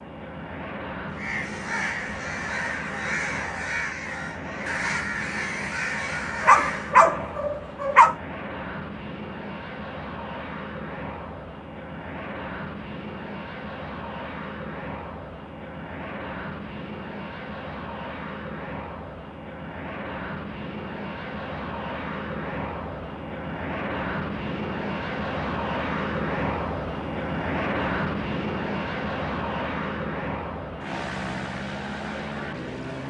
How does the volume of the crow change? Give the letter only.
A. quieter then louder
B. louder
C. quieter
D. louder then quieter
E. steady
E.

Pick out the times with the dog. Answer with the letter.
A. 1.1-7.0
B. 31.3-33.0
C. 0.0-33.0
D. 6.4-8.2
D.